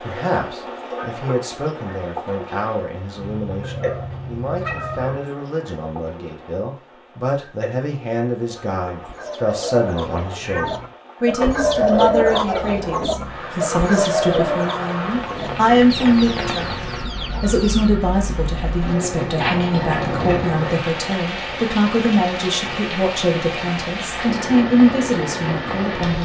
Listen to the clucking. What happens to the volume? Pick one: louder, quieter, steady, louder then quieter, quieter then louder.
louder then quieter.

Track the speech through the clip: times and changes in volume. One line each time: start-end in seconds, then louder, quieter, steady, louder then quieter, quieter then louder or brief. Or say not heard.
0.0-26.2 louder.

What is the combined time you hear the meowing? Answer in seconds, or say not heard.
3 s.